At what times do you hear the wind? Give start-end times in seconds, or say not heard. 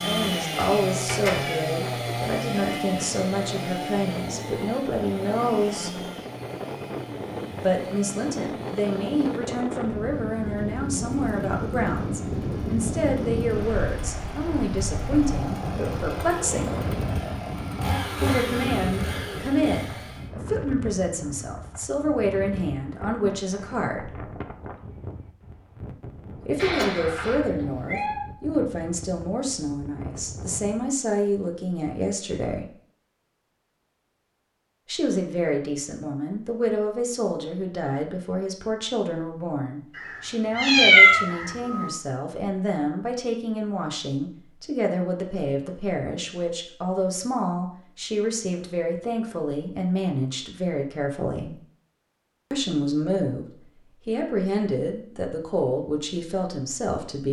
0.0-30.9.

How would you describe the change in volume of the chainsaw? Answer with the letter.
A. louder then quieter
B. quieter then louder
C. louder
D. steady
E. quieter
B.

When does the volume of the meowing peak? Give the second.
41 s.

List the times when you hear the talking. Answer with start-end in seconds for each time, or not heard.
0.0-6.0, 7.6-16.8, 18.1-24.1, 26.4-32.7, 34.9-51.5, 52.5-57.2.